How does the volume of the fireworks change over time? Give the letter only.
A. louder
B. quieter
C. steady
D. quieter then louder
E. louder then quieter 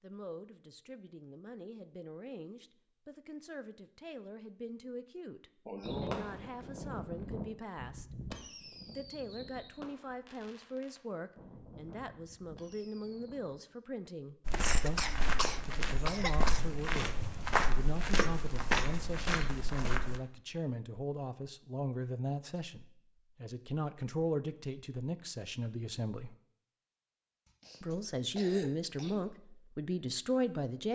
B.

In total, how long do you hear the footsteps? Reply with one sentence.
The footsteps can be heard for 6 seconds in total.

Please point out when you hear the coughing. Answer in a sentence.
The coughing can be heard from 5.7 to 6.3 s, from 14.6 to 16.6 s and from 27.4 to 29.2 s.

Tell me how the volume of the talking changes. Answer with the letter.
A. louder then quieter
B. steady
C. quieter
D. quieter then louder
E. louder
E.